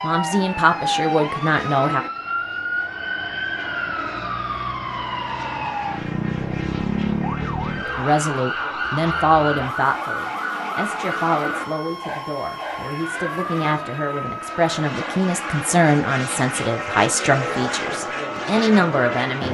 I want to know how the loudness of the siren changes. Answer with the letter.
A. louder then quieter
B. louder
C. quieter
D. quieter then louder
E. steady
C.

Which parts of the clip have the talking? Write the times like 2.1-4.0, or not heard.
0.0-2.0, 7.8-19.4.